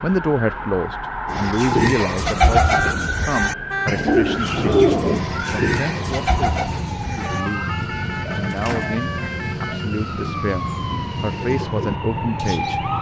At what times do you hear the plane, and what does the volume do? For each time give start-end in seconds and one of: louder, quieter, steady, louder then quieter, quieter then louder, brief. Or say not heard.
4.3-12.9 steady.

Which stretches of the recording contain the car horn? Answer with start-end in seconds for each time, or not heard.
2.7-3.9, 7.2-9.8.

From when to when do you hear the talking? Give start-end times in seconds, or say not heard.
0.0-7.7, 8.3-12.8.